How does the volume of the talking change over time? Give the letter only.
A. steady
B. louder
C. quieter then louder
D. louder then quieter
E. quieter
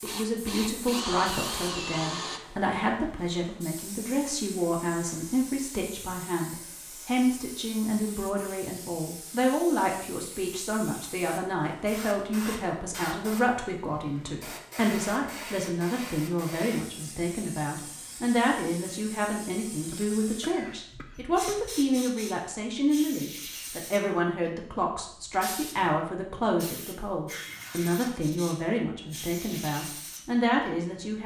A.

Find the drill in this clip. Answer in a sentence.
The drill can be heard from 0.0 to 2.4 s.